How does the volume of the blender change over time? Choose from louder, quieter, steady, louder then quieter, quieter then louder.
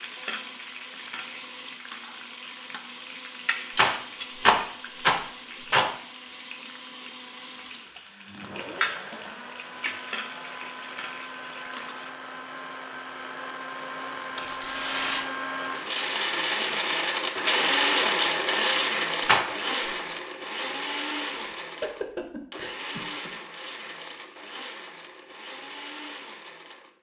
louder then quieter.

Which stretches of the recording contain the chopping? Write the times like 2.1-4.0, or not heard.
not heard.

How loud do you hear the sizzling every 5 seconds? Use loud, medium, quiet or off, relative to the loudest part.
loud, loud, loud, off, off, off.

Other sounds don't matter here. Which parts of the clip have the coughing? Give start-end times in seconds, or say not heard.
21.4-23.3.